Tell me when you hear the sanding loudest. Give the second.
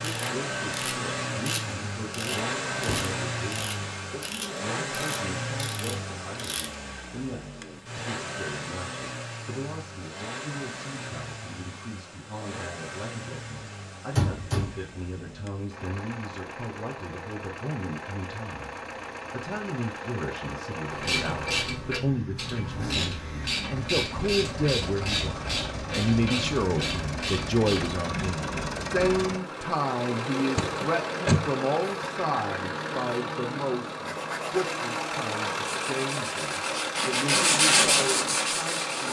38 s.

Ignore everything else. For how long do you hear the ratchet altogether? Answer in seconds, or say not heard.
14 s.